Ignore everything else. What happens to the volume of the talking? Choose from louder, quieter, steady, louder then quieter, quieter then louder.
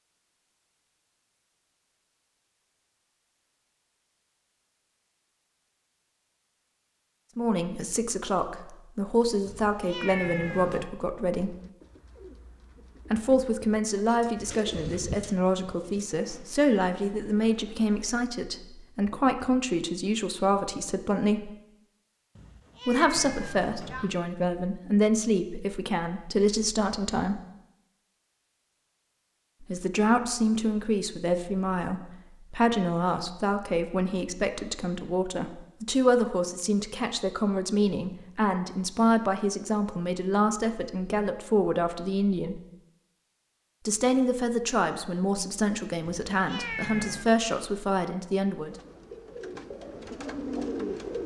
steady.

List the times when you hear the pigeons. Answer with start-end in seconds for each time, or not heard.
11.3-17.9, 48.6-51.2.